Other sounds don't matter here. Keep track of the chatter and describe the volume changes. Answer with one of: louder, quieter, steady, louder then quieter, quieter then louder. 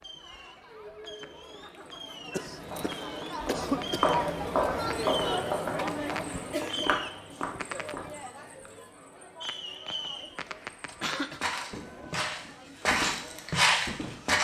louder then quieter.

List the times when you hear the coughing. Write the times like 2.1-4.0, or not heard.
2.3-4.0, 10.4-11.4.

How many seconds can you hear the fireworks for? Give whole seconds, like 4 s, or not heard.
13 s.